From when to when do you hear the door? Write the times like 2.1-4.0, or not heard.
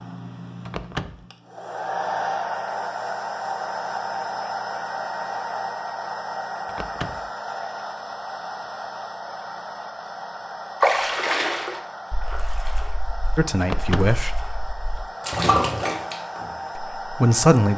0.7-1.2, 6.7-7.3, 13.6-14.2.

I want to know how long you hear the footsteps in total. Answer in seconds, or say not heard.
not heard.